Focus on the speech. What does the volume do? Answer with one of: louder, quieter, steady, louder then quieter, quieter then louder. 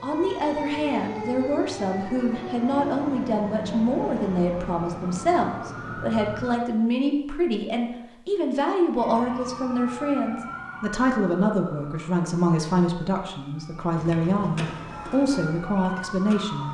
steady.